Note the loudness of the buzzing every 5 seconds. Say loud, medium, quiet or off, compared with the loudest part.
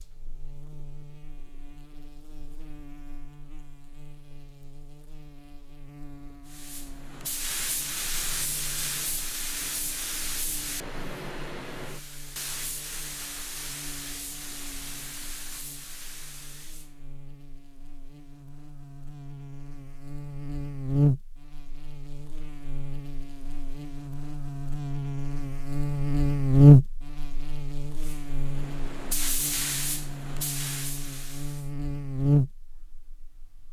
quiet, quiet, quiet, quiet, medium, loud, medium.